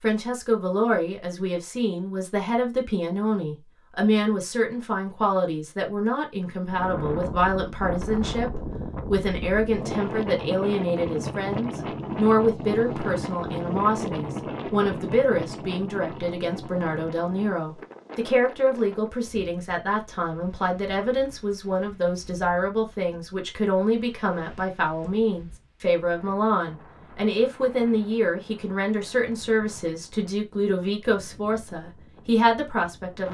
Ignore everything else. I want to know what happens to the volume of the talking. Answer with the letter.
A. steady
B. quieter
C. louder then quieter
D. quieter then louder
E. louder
A.